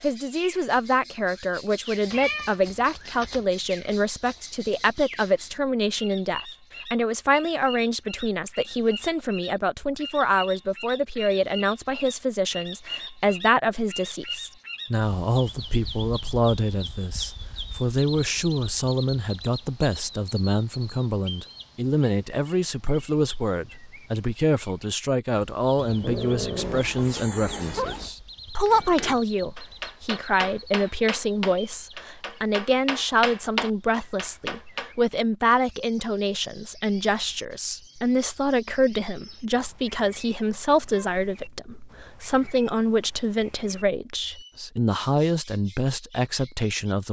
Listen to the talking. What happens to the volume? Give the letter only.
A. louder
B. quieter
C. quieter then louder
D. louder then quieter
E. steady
E.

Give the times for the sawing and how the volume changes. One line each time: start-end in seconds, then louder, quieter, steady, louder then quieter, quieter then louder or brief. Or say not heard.
not heard.